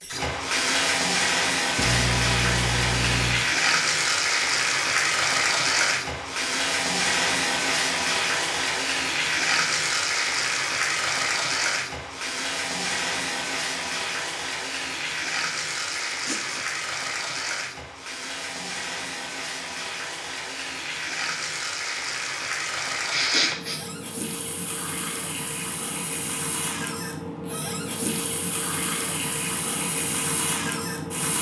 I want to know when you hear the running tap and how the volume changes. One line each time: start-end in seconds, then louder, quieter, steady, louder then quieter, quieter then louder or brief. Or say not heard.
0.0-31.3 quieter.